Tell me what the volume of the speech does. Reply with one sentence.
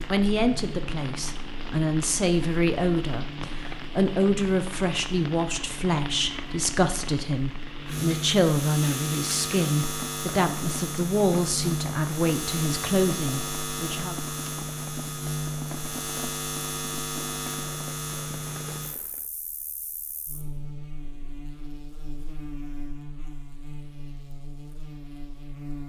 The loudness of the speech stays about the same.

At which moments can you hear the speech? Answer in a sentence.
You can hear the speech from 0.1 to 14.2 s.